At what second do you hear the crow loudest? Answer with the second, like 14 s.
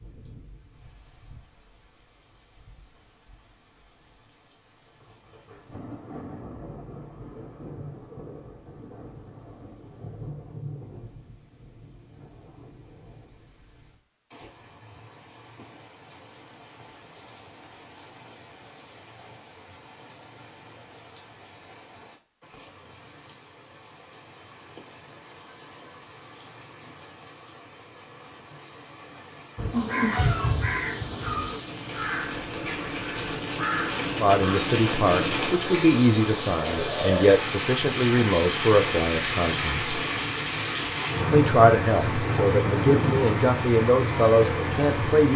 30 s.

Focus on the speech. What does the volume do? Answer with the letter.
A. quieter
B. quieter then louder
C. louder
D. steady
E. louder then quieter
D.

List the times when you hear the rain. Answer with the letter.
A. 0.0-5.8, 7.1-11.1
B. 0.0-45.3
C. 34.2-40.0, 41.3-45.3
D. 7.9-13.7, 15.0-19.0
B.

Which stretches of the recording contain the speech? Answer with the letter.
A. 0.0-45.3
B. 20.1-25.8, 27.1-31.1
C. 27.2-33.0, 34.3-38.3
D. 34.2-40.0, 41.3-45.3
D.